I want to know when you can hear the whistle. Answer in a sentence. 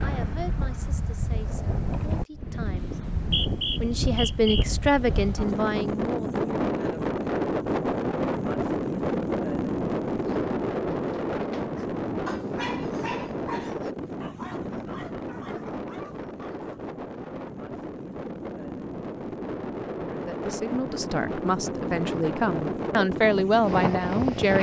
You can hear the whistle from 3.0 to 4.7 s.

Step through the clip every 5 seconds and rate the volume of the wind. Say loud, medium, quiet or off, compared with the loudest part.
medium, loud, loud, medium, loud.